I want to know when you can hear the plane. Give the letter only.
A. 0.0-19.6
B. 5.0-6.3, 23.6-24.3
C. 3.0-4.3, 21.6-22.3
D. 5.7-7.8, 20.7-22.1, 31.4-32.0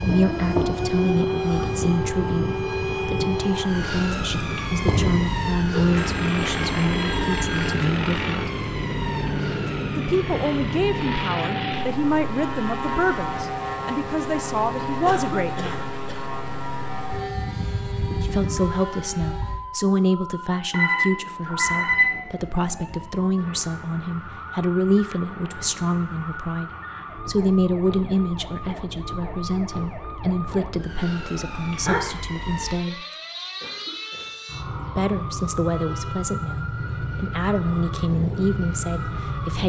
A.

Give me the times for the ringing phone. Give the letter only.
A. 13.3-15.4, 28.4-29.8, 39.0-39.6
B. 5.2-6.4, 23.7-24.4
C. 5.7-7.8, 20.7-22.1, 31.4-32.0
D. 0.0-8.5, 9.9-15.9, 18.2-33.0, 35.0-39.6
C.